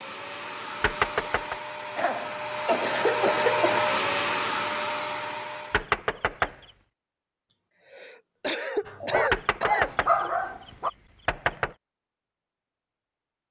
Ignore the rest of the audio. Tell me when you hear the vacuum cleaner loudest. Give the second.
4 s.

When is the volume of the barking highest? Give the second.
10 s.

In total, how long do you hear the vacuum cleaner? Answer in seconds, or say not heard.
6 s.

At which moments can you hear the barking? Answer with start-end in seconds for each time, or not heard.
8.8-10.9.